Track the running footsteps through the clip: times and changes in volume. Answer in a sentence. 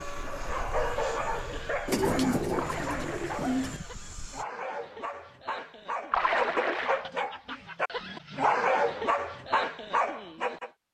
You can't hear the running footsteps here.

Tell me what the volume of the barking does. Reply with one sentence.
The loudness of the barking goes down, then up.